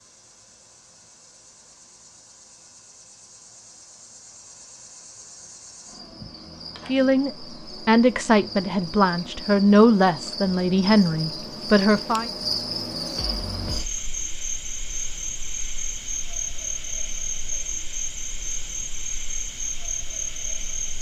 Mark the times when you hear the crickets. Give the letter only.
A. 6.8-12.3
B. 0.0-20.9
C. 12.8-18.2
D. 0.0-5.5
B.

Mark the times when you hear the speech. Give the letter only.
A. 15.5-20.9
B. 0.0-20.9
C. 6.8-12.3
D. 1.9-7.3
C.